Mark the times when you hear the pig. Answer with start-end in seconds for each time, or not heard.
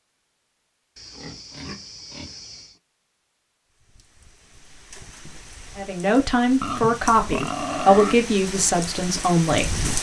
0.9-2.8, 6.6-8.2.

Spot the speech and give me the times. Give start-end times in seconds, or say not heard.
5.8-9.9.